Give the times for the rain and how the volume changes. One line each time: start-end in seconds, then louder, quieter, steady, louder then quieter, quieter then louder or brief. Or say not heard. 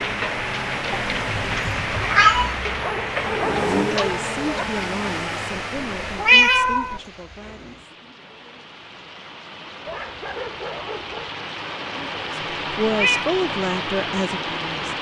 0.0-14.9 quieter then louder.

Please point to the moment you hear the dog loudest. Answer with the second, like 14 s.
3 s.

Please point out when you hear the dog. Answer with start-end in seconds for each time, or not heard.
2.6-4.7, 9.8-11.3.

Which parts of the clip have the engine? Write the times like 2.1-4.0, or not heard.
0.0-6.4.